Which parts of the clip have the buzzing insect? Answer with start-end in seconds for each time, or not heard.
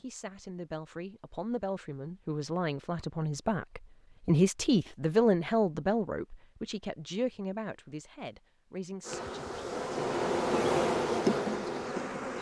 9.0-12.3.